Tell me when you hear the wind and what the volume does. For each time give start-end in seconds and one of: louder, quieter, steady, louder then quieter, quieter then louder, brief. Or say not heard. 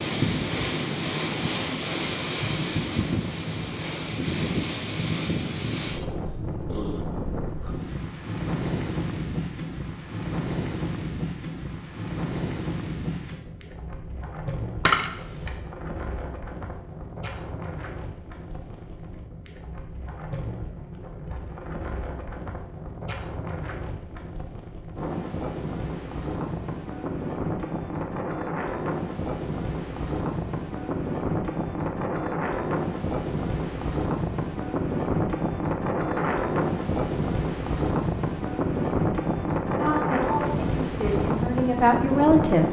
0.0-42.6 quieter then louder.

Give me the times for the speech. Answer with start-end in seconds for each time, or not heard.
39.8-42.6.